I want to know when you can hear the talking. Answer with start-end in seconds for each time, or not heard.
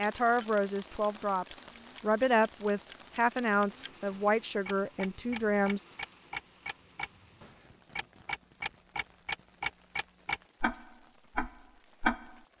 0.0-5.8.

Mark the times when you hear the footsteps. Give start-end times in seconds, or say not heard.
not heard.